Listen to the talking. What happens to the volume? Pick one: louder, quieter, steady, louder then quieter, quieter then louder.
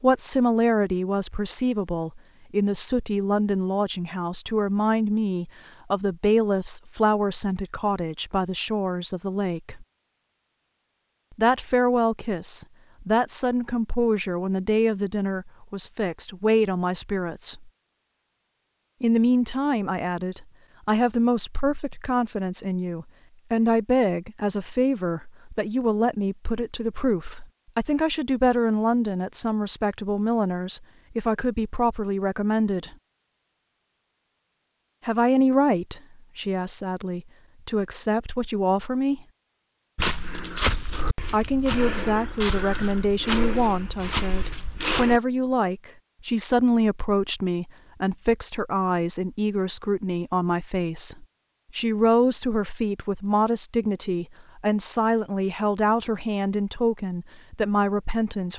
steady.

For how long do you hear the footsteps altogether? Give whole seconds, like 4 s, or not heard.
5 s.